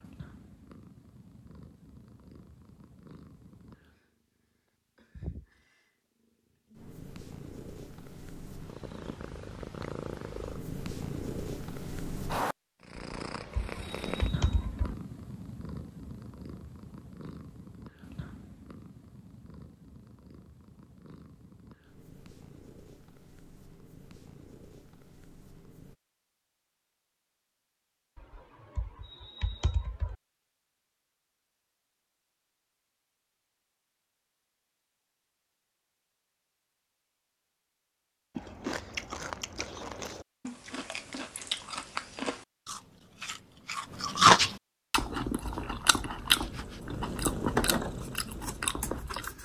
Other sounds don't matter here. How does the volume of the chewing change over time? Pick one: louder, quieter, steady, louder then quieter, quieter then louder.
louder then quieter.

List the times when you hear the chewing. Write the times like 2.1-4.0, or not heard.
38.4-49.4.